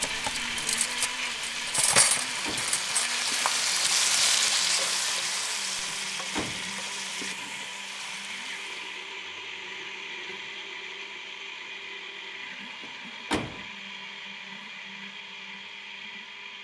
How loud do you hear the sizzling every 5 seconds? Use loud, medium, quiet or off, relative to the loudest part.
loud, medium, off, off.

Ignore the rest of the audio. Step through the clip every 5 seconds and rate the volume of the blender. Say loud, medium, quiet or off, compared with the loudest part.
loud, loud, medium, medium.